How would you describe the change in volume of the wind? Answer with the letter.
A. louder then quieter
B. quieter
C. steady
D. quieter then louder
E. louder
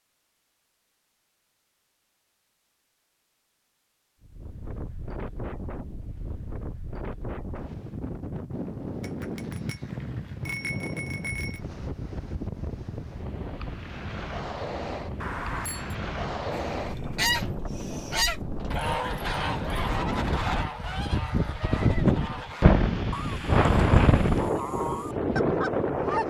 E.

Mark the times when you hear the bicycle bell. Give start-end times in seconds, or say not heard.
9.0-11.6, 15.2-15.9.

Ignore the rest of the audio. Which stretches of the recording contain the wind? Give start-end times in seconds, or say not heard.
4.2-26.2.